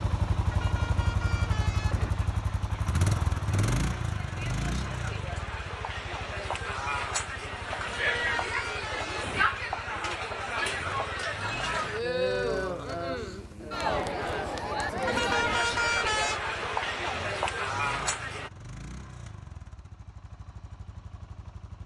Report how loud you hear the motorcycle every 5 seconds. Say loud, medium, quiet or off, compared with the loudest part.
loud, quiet, quiet, quiet, quiet.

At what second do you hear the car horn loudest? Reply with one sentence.
The volume of the car horn peaks at 16 seconds.